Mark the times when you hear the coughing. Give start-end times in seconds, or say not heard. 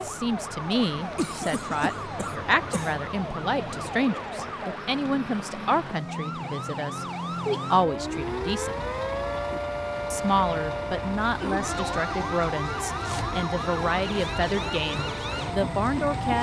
0.9-3.0, 11.2-11.7.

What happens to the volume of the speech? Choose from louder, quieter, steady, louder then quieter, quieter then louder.
steady.